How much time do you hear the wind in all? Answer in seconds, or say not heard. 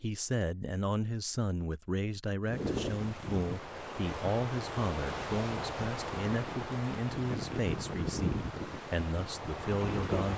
8 s.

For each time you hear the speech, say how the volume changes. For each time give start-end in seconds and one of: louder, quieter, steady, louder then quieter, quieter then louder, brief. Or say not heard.
0.0-10.3 steady.